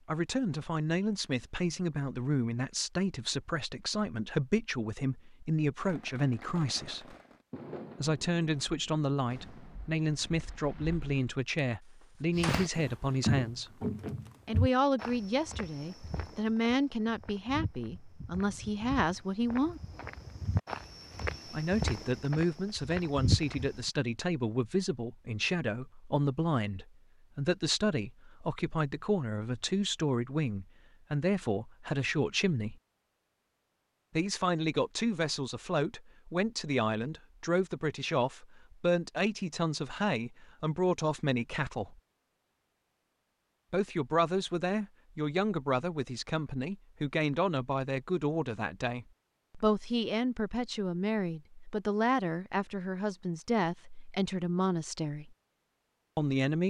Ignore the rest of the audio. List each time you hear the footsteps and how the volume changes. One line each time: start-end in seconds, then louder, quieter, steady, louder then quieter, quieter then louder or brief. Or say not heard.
12.3-23.8 quieter then louder.